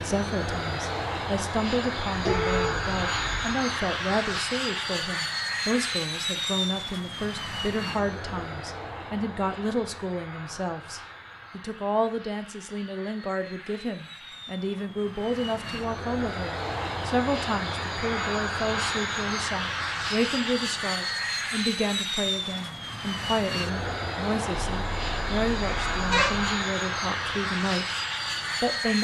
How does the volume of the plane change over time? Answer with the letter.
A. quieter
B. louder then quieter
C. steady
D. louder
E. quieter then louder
E.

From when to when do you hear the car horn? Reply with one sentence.
The car horn can be heard from 2.1 to 3.5 s and from 24.6 to 26.5 s.